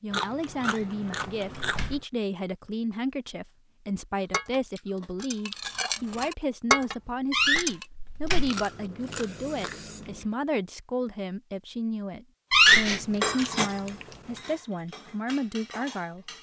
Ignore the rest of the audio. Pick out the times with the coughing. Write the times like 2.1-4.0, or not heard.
not heard.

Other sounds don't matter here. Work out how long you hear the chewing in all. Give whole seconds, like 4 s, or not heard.
7 s.